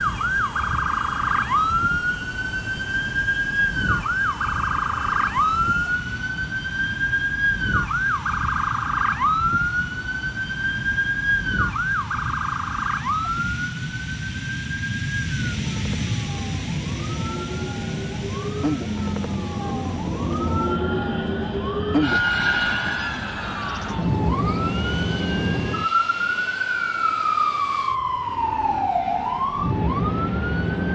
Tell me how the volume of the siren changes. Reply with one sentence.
The loudness of the siren goes down, then up.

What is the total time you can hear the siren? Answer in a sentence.
You can hear the siren for 31 seconds altogether.